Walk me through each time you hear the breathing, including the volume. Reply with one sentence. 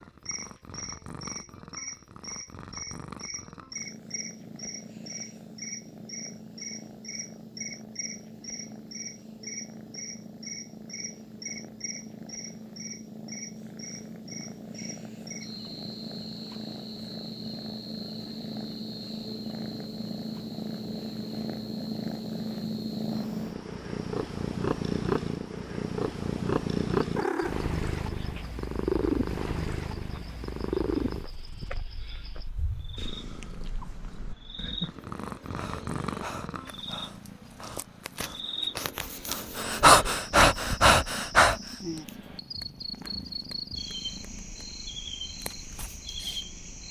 You can hear the breathing from 35.5 to 41.6 s, getting quieter then louder.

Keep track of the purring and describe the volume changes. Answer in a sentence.
The volume of the purring goes up, then down.